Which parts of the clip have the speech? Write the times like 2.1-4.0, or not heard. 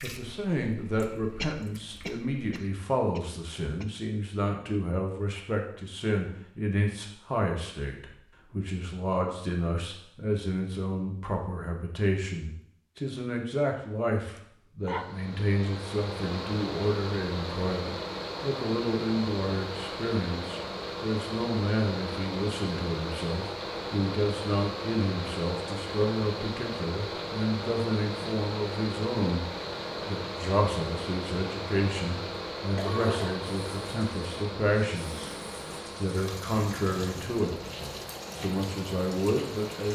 0.0-29.4, 30.1-37.7, 38.4-39.9.